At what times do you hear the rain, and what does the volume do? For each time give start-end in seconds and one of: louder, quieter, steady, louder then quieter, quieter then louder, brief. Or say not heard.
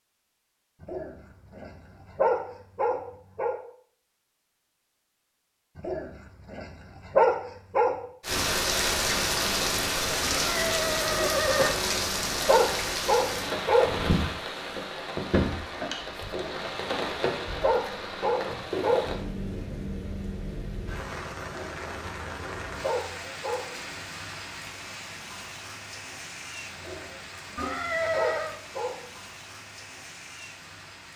8.2-31.1 quieter.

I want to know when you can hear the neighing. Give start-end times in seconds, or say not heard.
10.2-11.8, 27.6-28.6.